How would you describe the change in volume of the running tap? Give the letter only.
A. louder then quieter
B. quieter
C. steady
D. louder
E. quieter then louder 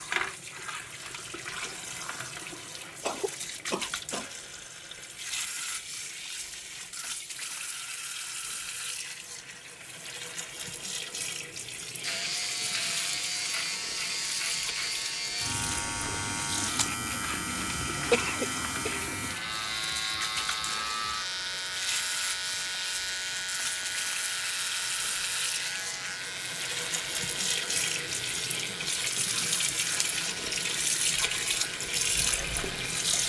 D.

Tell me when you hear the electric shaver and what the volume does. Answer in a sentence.
You can hear the electric shaver from 12.0 to 33.1 s, getting quieter.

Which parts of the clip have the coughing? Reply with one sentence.
You can hear the coughing from 3.0 to 4.3 s and from 18.1 to 19.1 s.